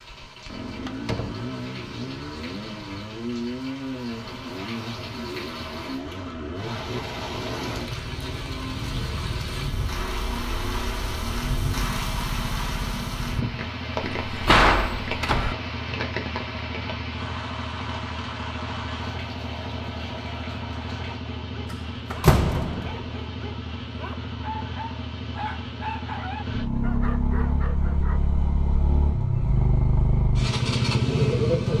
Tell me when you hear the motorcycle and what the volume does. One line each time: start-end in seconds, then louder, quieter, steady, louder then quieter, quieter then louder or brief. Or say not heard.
0.0-31.7 louder.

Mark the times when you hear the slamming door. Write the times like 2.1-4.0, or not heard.
0.8-1.5, 14.0-15.6, 21.7-23.1.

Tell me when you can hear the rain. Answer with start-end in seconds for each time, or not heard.
0.0-21.2.